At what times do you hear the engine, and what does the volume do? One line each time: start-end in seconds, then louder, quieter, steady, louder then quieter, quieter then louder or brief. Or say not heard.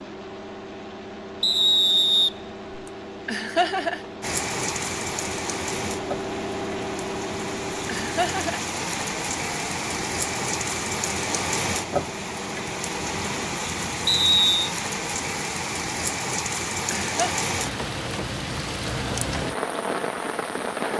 0.0-13.6 louder then quieter.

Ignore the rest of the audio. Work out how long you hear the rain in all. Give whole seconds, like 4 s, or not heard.
17 s.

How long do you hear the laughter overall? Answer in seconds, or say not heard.
2 s.